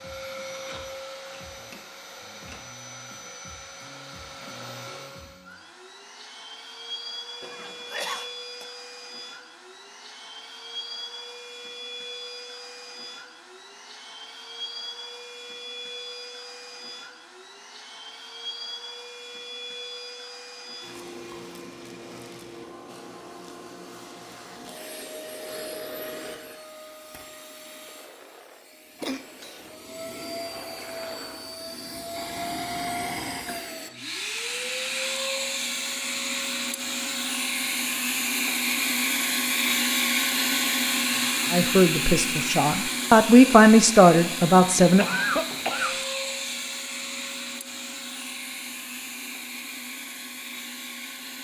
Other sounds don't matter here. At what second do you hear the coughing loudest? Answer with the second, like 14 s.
45 s.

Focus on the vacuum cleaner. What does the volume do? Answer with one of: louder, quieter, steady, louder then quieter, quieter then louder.
louder.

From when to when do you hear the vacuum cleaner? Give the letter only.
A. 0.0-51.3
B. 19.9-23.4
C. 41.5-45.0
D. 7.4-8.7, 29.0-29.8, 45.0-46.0
A.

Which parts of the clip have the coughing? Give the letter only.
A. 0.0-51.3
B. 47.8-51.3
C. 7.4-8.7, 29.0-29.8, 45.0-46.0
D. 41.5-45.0
C.